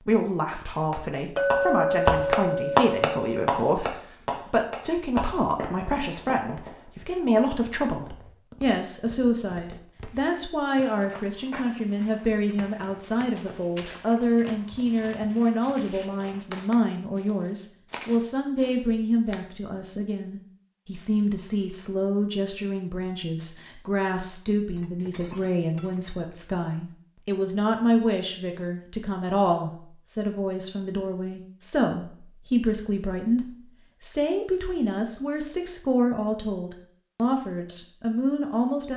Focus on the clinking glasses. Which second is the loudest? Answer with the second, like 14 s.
2 s.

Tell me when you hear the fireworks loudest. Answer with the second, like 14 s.
3 s.